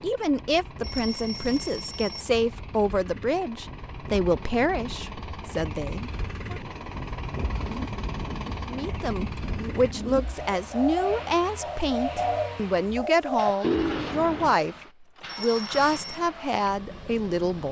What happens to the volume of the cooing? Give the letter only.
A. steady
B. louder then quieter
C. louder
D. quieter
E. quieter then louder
C.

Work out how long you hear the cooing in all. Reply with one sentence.
You can hear the cooing for 7 seconds altogether.